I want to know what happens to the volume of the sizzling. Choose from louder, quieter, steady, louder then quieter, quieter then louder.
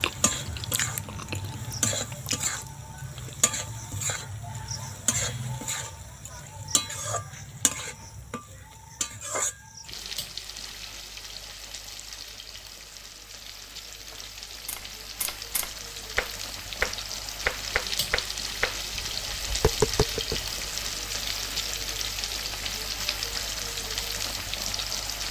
quieter then louder.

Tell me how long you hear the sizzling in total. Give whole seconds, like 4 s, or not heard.
25 s.